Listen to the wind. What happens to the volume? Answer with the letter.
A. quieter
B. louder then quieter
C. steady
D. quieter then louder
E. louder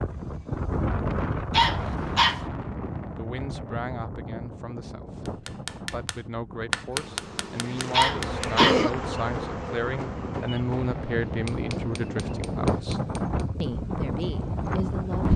D.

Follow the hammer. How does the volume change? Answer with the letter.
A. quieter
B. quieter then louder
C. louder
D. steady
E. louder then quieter
A.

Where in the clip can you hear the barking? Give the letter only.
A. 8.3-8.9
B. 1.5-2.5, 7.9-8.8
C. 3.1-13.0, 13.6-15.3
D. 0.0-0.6
B.